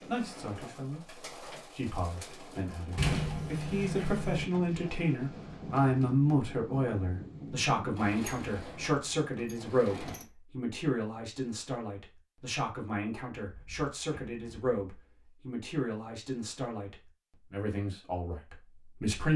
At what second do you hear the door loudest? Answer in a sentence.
The loudest moment of the door is at 3 seconds.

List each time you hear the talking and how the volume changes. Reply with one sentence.
The talking can be heard from 0.1 to 19.3 s, getting louder then quieter.